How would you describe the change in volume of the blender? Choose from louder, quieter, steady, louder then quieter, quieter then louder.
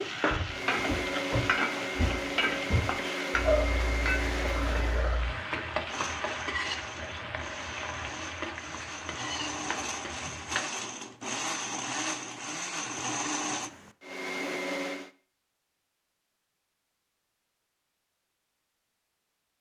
quieter then louder.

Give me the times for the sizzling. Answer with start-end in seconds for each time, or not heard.
0.0-10.7.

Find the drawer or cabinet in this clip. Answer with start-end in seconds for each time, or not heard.
0.2-3.0.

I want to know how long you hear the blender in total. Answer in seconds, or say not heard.
15 s.